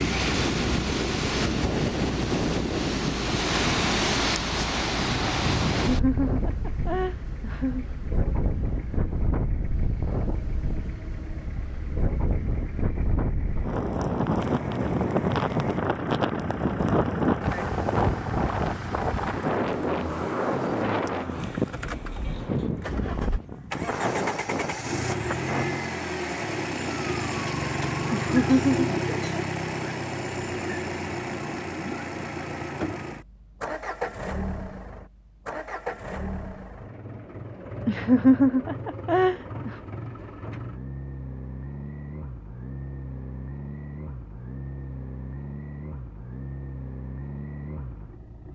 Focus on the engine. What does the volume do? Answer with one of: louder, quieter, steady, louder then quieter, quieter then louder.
louder then quieter.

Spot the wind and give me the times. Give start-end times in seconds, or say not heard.
0.0-25.8.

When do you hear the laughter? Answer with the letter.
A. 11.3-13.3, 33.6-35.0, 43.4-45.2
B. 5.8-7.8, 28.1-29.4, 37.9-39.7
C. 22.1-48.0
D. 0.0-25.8
B.